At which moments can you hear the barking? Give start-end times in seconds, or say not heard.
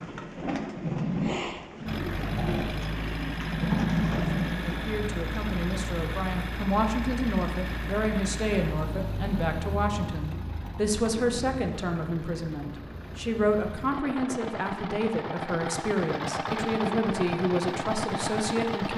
not heard.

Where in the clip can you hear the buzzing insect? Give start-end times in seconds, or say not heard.
not heard.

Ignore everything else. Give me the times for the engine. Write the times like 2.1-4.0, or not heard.
1.9-18.9.